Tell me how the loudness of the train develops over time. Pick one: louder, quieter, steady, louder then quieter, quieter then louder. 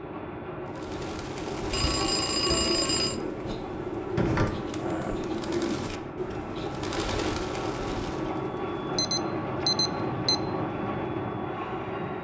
louder.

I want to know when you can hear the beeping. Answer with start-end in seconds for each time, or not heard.
1.7-3.2, 8.9-10.3.